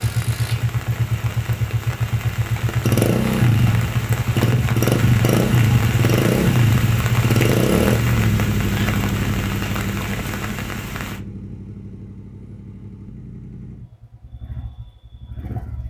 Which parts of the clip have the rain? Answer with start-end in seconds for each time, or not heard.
0.0-11.2.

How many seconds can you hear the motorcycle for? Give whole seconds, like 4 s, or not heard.
16 s.